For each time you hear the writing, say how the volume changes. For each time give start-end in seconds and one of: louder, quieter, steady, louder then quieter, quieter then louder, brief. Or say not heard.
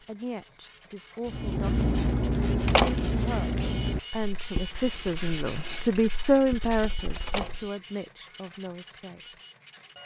1.2-7.7 quieter.